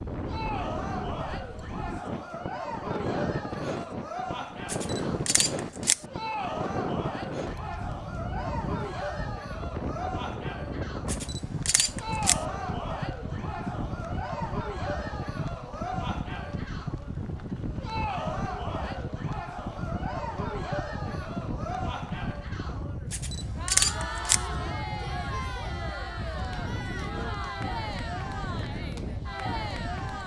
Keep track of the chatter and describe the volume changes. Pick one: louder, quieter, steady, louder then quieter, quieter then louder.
steady.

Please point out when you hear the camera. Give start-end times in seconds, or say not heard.
4.7-6.0, 11.1-12.4, 23.1-24.4.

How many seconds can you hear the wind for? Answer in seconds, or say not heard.
30 s.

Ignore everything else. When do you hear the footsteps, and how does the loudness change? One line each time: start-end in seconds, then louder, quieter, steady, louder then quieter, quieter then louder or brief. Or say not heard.
not heard.